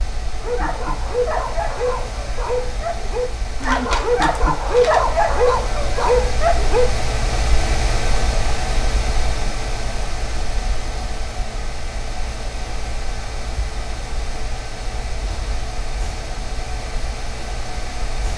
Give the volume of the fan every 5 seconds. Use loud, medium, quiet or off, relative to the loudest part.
medium, loud, medium, medium.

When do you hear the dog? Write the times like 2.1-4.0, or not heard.
0.4-6.8.